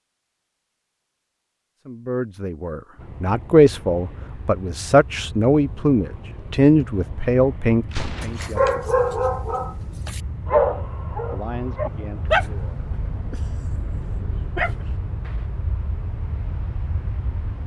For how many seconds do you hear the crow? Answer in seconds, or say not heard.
not heard.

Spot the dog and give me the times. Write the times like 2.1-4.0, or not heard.
8.2-15.3.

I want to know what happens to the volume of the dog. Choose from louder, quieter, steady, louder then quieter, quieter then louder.
quieter then louder.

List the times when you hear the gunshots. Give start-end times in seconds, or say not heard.
7.9-8.6.